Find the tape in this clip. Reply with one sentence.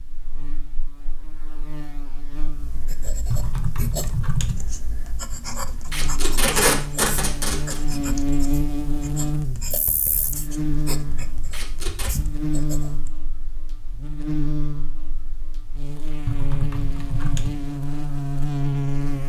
You can hear the tape from 5.9 to 7.8 s and from 11.5 to 12.2 s.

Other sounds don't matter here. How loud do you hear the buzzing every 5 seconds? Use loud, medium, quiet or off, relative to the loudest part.
quiet, loud, loud, loud.